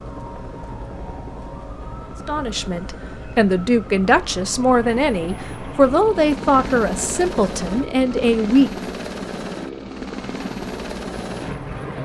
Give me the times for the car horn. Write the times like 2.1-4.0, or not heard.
not heard.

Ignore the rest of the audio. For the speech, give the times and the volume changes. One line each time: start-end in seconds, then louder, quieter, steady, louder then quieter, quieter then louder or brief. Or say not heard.
2.2-8.7 steady.